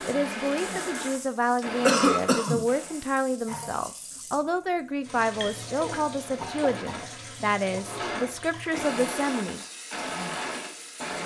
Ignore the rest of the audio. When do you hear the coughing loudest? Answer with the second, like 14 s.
2 s.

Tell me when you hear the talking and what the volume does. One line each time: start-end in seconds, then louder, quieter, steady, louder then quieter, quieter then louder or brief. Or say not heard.
0.1-9.6 steady.